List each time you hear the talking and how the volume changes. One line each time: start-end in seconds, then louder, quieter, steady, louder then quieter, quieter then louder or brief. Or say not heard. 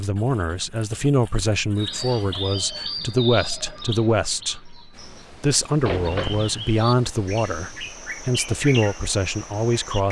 0.0-10.0 steady.